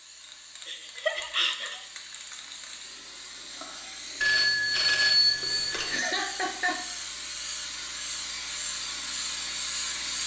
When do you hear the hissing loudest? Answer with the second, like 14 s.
10 s.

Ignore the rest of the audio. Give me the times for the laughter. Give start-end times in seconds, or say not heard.
0.7-1.9, 5.8-6.8.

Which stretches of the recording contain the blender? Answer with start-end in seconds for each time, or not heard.
not heard.